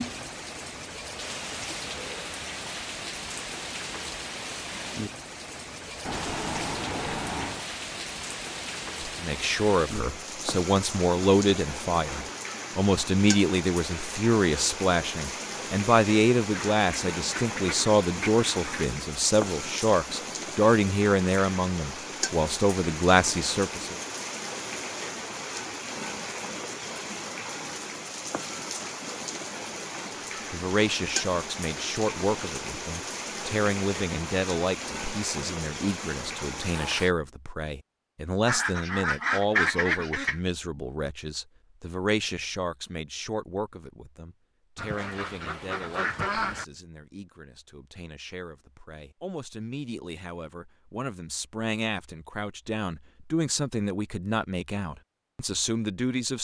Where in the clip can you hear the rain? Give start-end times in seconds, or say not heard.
0.0-37.1.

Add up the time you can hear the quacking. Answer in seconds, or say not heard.
8 s.